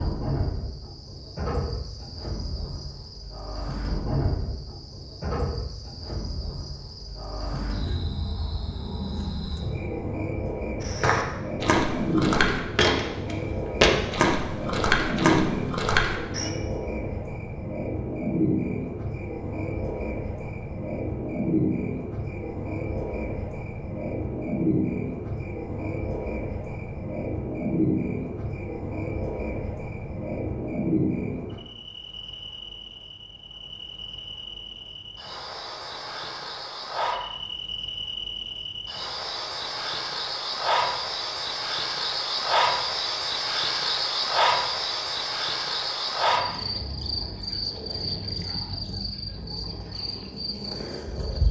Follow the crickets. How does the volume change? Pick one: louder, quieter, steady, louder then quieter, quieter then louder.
louder.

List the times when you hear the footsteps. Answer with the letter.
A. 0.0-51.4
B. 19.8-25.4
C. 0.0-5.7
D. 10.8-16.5
D.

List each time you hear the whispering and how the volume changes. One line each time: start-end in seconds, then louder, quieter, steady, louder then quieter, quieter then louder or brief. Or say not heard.
not heard.